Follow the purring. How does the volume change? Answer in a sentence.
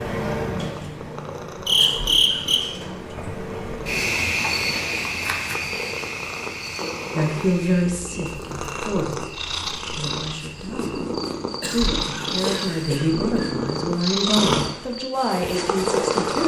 The volume of the purring goes up.